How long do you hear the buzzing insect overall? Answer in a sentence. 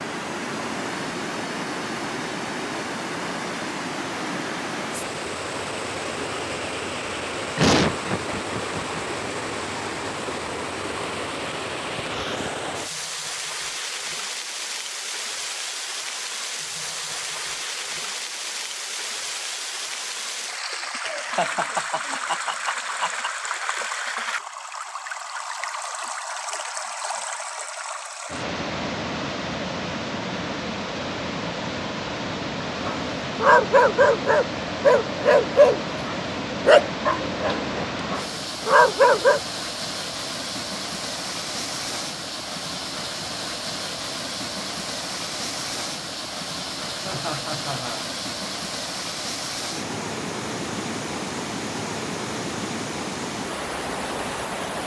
The buzzing insect can't be heard in this clip.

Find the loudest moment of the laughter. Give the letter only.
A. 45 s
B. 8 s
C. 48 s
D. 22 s
B.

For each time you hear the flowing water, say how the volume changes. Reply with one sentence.
You can hear the flowing water from 0.0 to 54.8 s, at a steady volume.